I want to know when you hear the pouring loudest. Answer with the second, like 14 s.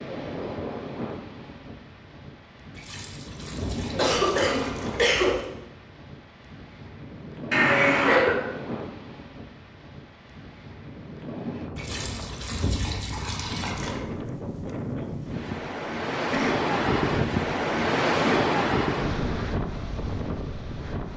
13 s.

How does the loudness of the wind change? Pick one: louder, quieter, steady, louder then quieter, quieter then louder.
louder.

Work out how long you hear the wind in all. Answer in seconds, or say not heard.
21 s.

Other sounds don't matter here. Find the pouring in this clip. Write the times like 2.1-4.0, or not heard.
2.8-5.5, 11.8-14.0.